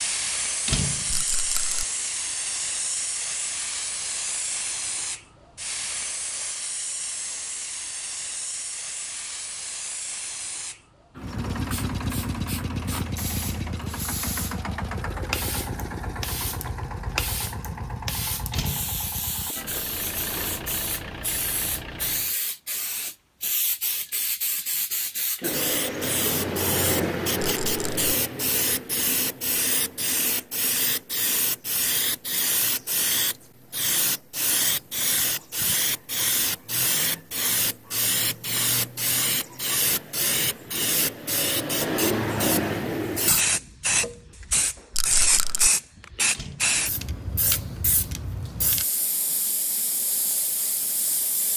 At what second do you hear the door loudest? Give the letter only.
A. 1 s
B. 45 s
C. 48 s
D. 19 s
A.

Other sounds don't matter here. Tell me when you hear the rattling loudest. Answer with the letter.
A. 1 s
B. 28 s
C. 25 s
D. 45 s
D.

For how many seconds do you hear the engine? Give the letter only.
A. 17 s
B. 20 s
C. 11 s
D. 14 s
C.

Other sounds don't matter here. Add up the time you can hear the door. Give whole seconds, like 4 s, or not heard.
2 s.